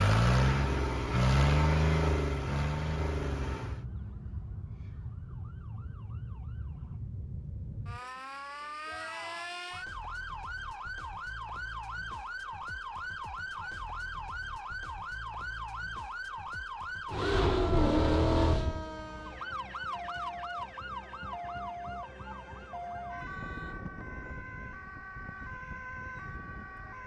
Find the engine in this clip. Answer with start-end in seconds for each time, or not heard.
0.0-3.9, 17.1-18.9.